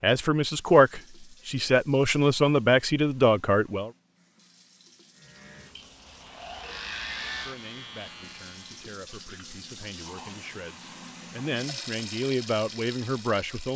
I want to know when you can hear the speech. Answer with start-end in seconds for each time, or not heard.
0.0-3.9, 7.4-13.7.